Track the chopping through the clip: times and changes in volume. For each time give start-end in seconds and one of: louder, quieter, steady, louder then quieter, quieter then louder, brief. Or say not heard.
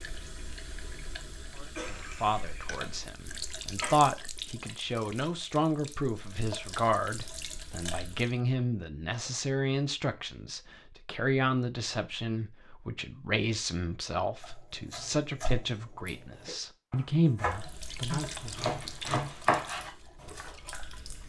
14.4-20.5 quieter then louder.